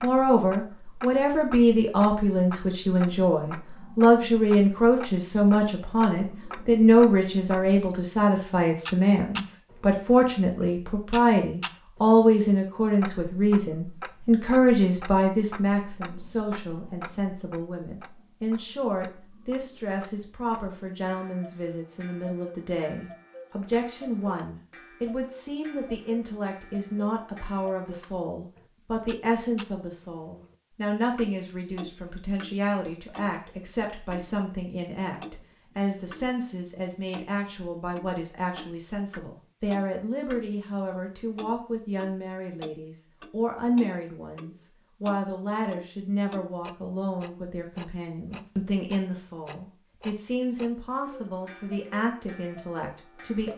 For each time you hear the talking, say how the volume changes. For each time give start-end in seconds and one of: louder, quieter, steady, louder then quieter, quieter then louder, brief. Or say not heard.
0.0-53.5 quieter.